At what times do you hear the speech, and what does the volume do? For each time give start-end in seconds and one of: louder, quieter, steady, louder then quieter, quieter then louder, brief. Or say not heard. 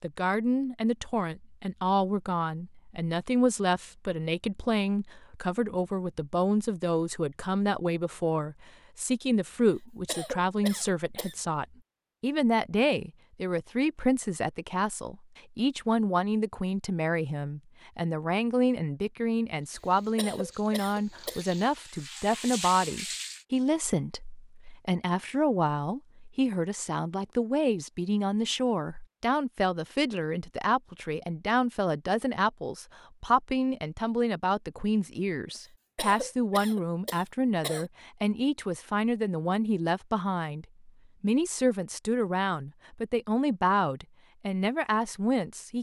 0.0-45.7 steady.